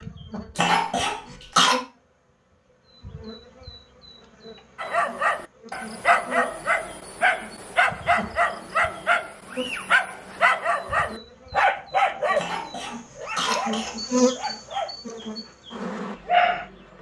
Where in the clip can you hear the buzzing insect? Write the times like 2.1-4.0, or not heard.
0.0-16.9.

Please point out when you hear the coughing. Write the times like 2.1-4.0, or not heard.
0.6-1.8, 12.3-13.9.